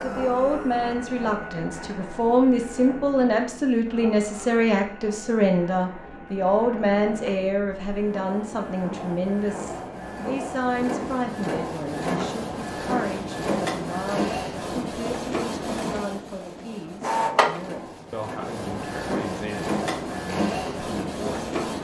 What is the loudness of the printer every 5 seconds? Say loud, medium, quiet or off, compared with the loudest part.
medium, medium, loud, loud, loud.